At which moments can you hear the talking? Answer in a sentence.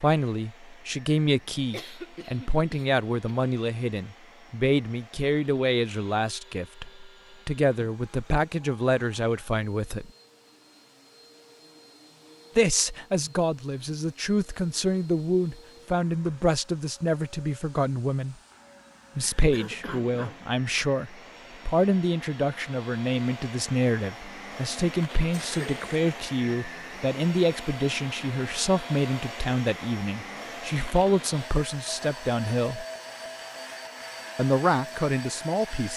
The talking can be heard from 0.0 to 10.1 s, from 12.6 to 18.4 s, from 19.1 to 32.9 s and from 34.4 to 35.9 s.